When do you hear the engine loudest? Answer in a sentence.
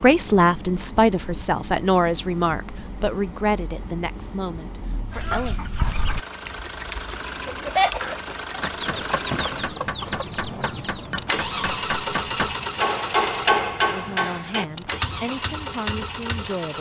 The volume of the engine peaks at 12 seconds.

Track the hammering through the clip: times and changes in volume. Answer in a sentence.
You can hear the hammering from 8.0 to 16.5 s, getting louder then quieter.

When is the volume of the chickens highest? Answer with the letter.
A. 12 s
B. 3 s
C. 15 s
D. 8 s
D.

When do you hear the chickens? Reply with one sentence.
The chickens can be heard from 5.1 to 11.1 s.